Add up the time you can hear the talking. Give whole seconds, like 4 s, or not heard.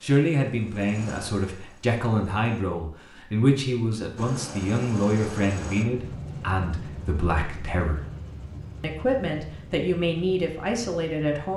11 s.